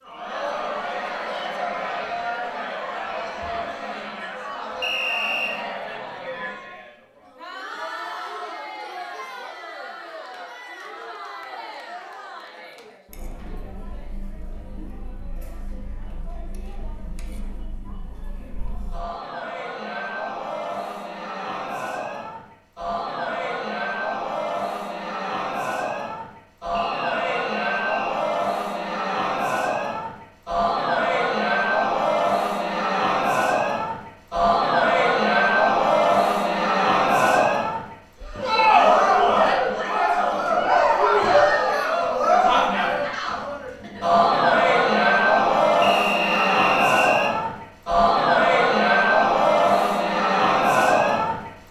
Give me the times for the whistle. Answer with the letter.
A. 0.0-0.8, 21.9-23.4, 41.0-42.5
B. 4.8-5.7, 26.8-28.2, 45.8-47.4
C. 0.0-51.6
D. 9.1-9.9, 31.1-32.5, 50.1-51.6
B.